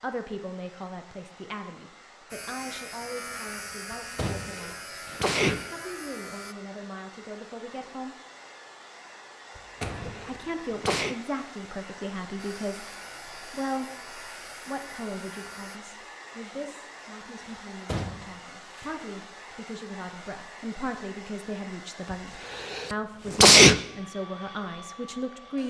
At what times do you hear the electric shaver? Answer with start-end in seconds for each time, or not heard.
2.3-6.5, 12.3-15.8.